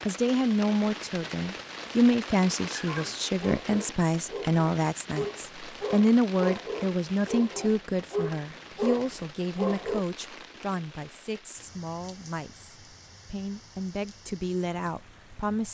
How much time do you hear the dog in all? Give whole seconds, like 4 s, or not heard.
7 s.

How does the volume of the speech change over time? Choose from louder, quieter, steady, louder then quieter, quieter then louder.
quieter.